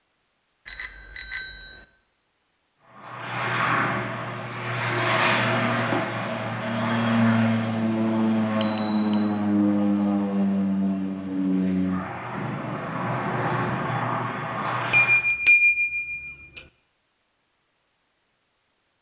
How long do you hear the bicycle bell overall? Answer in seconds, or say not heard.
4 s.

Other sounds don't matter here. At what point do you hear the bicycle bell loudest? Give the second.
16 s.